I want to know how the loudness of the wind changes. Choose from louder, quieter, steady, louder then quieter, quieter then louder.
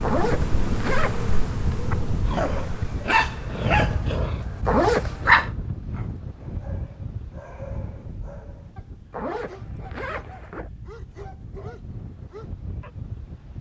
quieter.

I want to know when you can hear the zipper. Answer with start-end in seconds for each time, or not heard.
0.0-1.4, 4.7-5.4, 9.1-10.7.